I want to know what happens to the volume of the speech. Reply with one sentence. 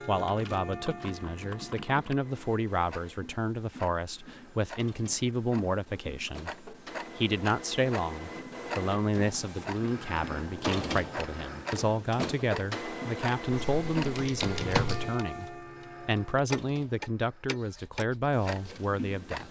The volume of the speech stays about the same.